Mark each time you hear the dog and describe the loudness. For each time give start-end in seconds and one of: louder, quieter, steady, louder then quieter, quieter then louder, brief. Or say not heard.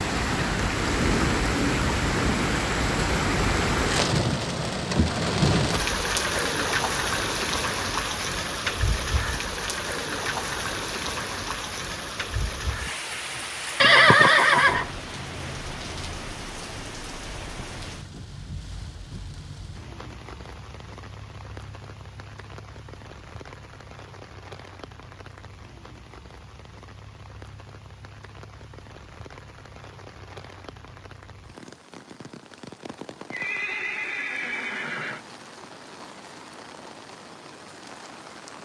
not heard.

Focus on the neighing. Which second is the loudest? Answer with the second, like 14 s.
14 s.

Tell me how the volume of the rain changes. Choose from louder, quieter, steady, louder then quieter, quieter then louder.
quieter.